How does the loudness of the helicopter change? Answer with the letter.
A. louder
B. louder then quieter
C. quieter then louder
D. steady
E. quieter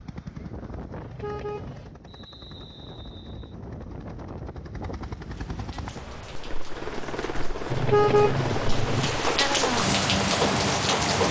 A.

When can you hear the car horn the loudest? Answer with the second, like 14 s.
8 s.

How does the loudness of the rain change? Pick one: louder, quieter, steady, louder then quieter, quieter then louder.
louder.